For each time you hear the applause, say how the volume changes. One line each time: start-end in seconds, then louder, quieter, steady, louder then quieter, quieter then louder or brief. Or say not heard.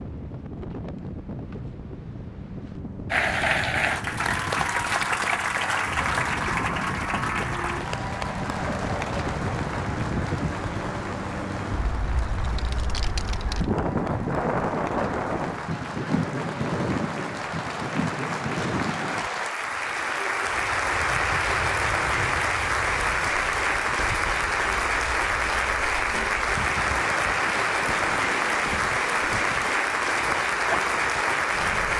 3.1-31.9 quieter then louder.